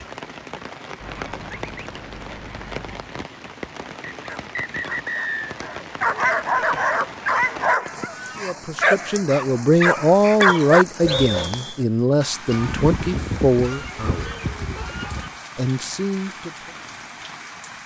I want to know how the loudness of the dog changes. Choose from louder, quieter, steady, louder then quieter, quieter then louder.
louder.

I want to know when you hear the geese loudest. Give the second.
13 s.